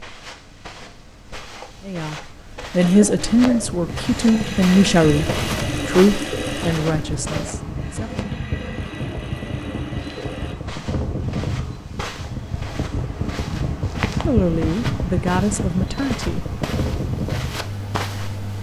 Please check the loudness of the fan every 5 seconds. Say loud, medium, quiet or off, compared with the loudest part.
medium, loud, loud, loud.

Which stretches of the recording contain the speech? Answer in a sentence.
You can hear the speech from 1.9 to 8.2 s and from 14.2 to 16.4 s.